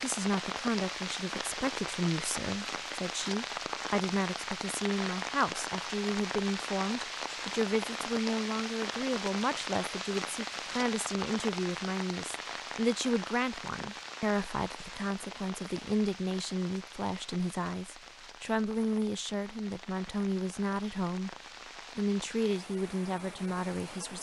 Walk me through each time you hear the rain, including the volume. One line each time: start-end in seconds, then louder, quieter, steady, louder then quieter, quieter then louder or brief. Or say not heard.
0.0-24.1 quieter.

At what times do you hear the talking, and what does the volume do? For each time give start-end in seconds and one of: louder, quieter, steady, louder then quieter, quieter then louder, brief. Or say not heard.
0.0-21.4 steady
21.9-24.1 brief.